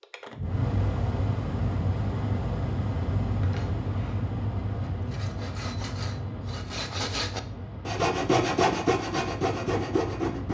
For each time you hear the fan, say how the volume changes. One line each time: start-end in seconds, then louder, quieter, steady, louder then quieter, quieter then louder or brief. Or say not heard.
0.0-10.4 quieter.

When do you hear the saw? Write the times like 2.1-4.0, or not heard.
3.4-10.4.